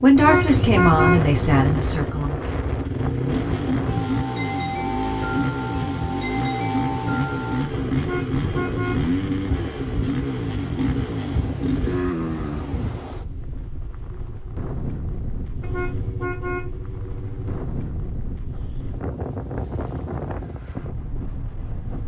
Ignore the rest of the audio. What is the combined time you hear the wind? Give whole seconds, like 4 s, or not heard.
22 s.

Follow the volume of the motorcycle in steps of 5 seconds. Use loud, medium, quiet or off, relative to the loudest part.
loud, loud, loud, off, off.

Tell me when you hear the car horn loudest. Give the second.
1 s.